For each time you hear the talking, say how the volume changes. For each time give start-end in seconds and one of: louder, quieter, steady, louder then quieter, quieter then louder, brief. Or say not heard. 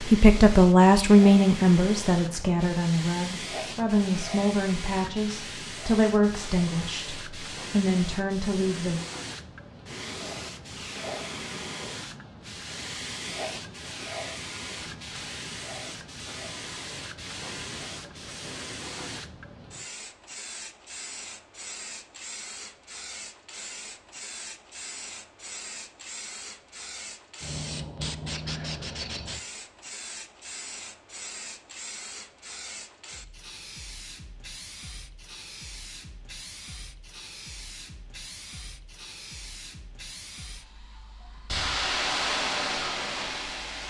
0.1-9.0 quieter.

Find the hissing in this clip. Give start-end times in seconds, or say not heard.
0.0-43.8.